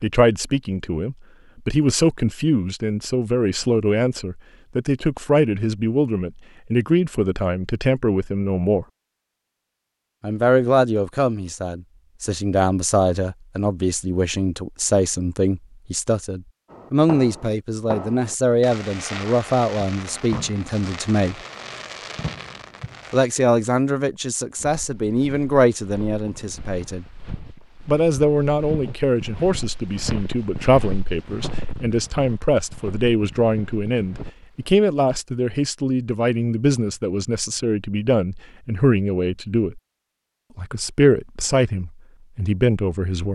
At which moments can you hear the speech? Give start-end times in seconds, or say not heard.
0.0-8.8, 10.2-21.4, 23.1-27.1, 27.9-39.8, 40.5-43.2.